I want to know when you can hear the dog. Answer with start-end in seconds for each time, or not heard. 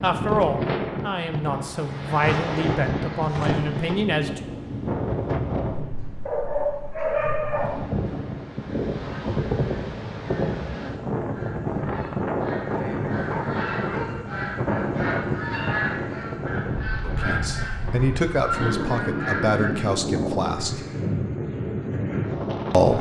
6.2-7.9, 12.7-14.2.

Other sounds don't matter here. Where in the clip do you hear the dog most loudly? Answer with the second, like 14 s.
7 s.